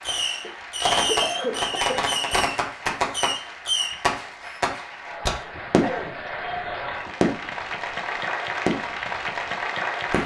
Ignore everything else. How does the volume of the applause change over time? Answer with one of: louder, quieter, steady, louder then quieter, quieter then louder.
louder.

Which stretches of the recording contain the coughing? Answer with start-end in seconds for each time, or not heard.
0.2-2.1, 5.5-7.2.